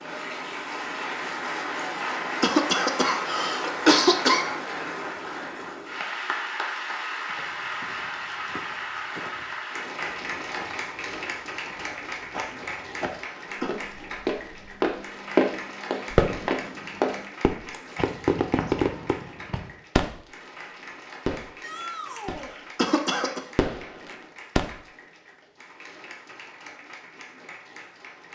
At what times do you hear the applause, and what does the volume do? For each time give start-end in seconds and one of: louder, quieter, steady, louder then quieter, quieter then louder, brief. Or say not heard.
0.0-28.2 quieter.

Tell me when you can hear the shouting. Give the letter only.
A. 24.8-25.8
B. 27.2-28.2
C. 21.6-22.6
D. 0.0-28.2
C.